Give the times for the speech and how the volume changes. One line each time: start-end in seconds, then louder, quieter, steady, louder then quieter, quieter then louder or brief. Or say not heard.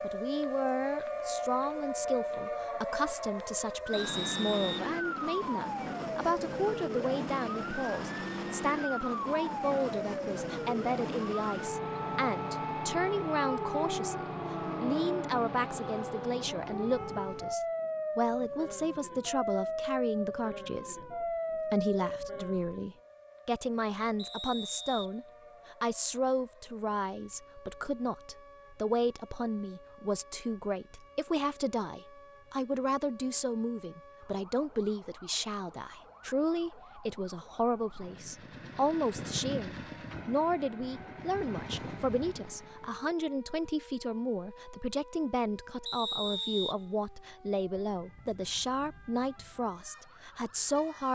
0.0-51.0 steady.